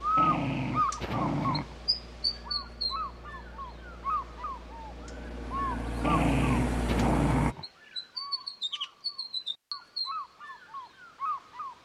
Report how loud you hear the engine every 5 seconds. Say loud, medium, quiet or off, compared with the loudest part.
quiet, loud, off.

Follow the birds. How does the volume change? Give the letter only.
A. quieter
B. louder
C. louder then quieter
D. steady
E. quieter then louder
A.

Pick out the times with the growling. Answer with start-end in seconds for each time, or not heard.
0.1-1.8, 6.0-7.7.